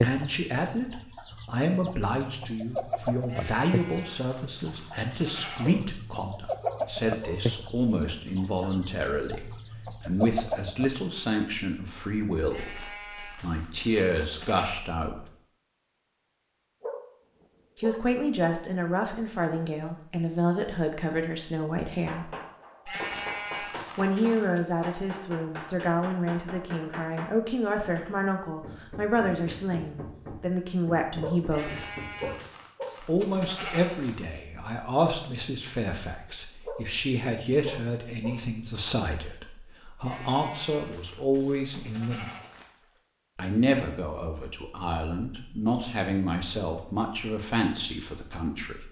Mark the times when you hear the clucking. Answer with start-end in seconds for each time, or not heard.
0.0-10.9.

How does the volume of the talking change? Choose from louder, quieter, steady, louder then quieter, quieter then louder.
steady.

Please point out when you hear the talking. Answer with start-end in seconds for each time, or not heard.
0.0-15.2, 17.8-22.3, 23.9-31.9, 33.0-42.2, 43.4-48.8.